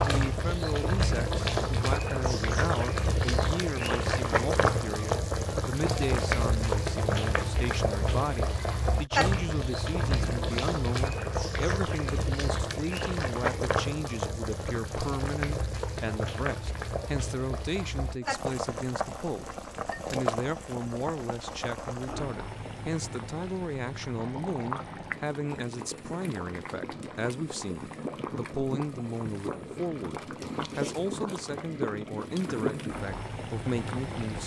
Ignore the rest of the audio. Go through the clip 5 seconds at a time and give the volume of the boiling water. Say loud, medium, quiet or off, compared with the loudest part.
loud, loud, loud, medium, medium, medium, medium.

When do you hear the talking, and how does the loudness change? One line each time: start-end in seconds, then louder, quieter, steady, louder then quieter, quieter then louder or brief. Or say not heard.
0.0-34.4 steady.